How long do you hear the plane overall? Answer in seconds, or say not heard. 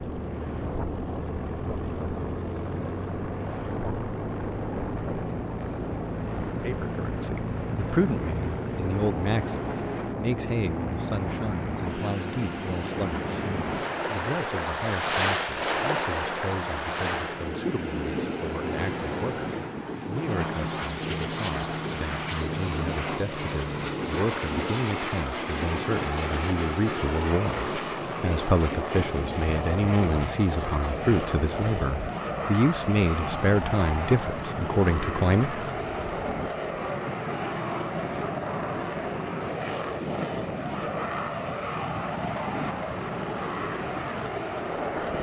45 s.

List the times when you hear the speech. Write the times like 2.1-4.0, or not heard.
6.6-35.6.